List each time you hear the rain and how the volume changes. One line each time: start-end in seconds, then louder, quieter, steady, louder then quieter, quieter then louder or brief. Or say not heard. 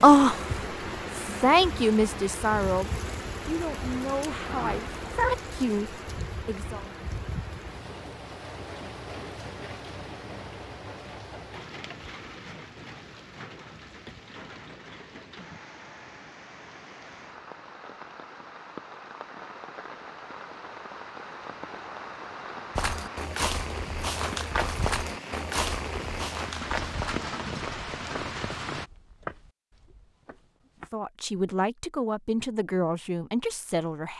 0.0-28.9 quieter then louder.